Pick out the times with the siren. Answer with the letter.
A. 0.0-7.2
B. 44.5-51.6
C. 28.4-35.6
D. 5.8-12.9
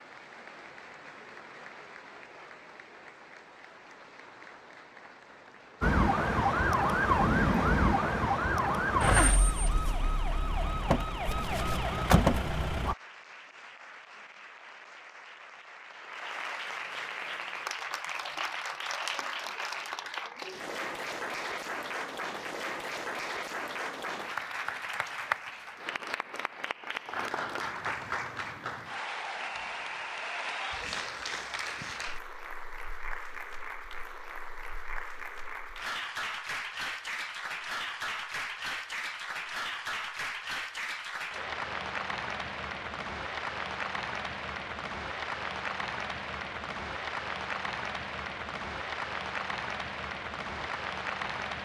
D.